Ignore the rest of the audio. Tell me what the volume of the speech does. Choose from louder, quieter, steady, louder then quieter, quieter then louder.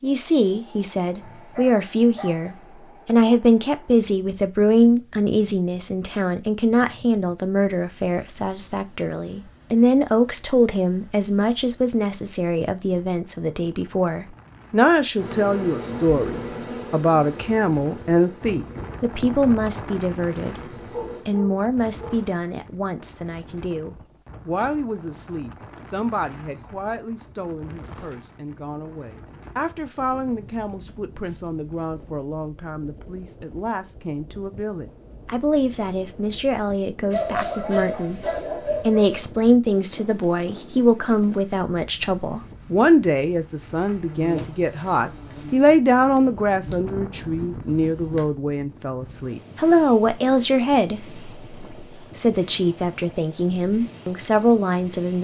quieter then louder.